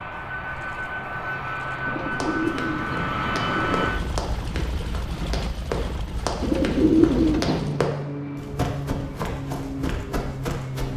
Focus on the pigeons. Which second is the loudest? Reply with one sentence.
The volume of the pigeons peaks at 7 seconds.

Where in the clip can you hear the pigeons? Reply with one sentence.
You can hear the pigeons from 1.9 to 4.0 s and from 6.4 to 7.9 s.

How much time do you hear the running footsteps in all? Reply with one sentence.
The running footsteps can be heard for 9 seconds in total.